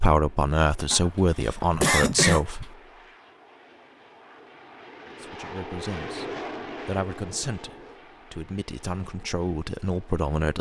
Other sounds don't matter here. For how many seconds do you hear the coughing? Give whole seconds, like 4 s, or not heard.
2 s.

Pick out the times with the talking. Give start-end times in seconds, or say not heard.
0.0-2.7, 5.2-10.5.